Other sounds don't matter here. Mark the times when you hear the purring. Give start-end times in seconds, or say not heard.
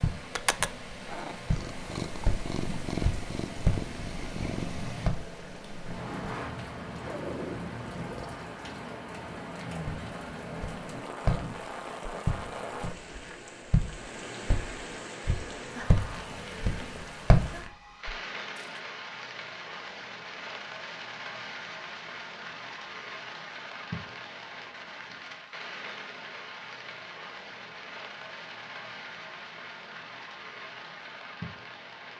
0.1-8.4.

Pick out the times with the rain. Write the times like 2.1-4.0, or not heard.
0.0-32.1.